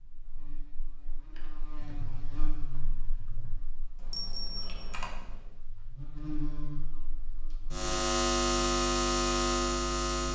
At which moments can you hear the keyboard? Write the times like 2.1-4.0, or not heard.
1.4-5.6.